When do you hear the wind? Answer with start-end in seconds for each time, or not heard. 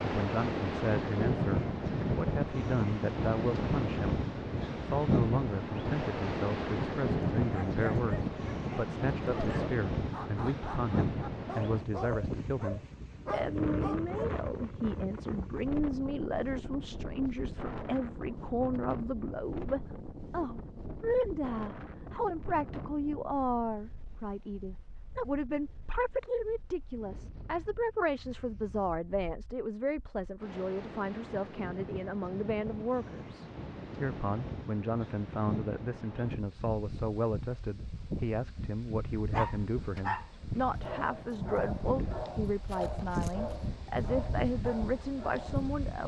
0.0-46.0.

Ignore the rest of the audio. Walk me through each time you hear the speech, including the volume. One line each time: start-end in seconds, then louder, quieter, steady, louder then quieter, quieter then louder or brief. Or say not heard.
0.0-46.0 steady.